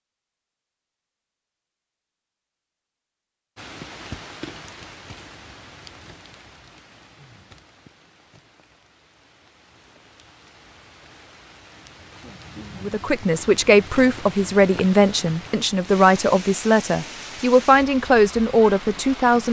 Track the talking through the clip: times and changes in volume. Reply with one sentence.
The talking can be heard from 12.8 to 19.4 s, at a steady volume.